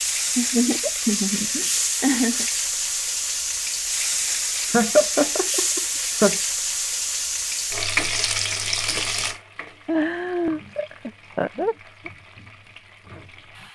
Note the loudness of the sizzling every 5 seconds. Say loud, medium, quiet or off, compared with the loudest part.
loud, loud, quiet.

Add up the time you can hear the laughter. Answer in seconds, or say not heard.
6 s.